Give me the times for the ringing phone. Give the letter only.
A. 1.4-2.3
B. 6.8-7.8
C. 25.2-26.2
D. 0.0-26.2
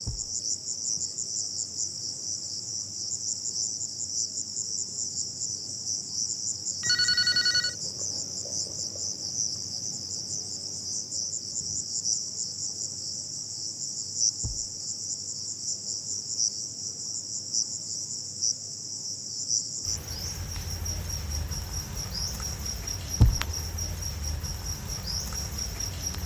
B.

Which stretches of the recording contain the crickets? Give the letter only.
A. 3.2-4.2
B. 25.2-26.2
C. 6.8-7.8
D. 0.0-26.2
D.